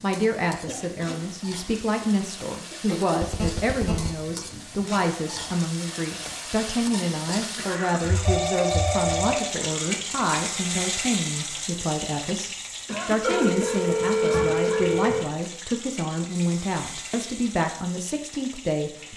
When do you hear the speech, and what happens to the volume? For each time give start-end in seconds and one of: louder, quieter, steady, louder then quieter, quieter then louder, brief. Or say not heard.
0.0-19.1 steady.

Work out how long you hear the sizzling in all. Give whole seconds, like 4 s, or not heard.
19 s.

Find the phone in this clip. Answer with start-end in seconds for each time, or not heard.
3.2-4.1, 8.0-9.6, 13.2-15.2.